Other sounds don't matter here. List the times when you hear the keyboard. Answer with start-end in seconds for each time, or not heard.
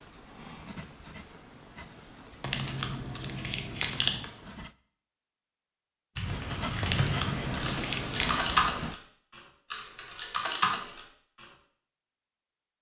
6.2-11.4.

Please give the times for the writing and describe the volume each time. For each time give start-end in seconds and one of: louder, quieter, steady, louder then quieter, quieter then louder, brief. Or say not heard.
0.0-4.8 quieter
6.2-9.0 brief.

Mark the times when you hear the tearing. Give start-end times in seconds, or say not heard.
2.4-4.2, 6.8-8.3.